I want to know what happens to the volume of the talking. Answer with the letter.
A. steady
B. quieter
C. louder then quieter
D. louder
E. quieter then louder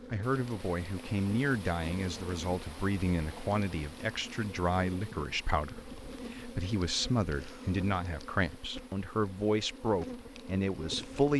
A.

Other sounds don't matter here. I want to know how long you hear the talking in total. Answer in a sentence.
The talking can be heard for 11 seconds in total.